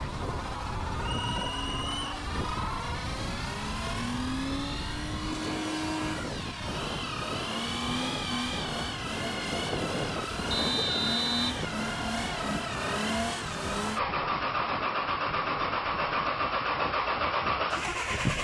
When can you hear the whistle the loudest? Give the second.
11 s.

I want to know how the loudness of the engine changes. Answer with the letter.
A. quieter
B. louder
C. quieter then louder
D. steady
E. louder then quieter
B.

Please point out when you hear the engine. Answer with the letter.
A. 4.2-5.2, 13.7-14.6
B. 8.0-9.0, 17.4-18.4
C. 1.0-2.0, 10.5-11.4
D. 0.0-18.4
D.